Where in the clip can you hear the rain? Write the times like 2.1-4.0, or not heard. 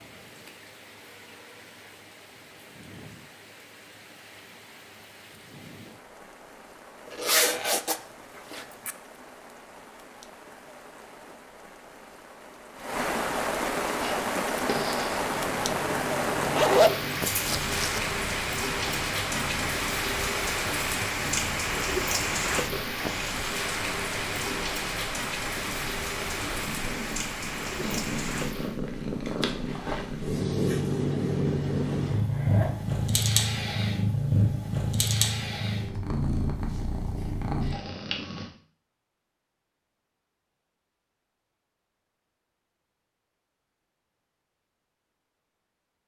0.0-28.8.